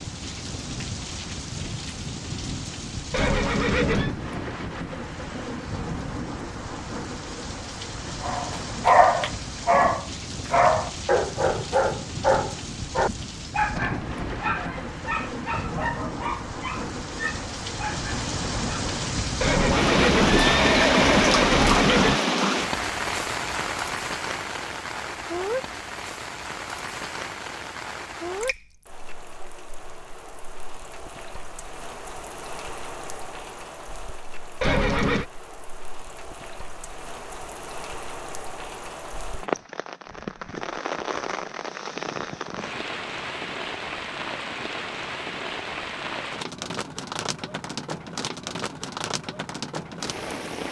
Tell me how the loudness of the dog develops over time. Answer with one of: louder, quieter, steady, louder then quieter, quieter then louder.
quieter.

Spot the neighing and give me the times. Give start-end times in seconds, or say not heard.
3.1-4.1, 19.4-22.2, 34.6-35.2.